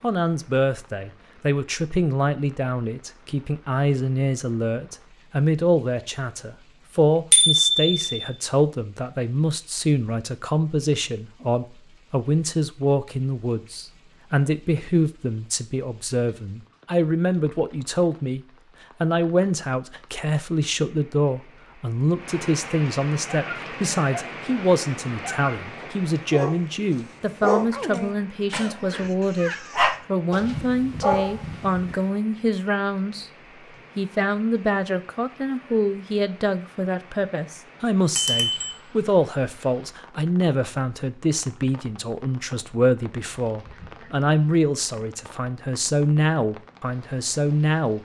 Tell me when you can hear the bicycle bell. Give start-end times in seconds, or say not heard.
7.3-8.1, 38.1-38.7.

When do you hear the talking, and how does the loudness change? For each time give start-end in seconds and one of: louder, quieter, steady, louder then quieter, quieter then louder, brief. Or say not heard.
0.0-33.3 steady
34.0-48.0 steady.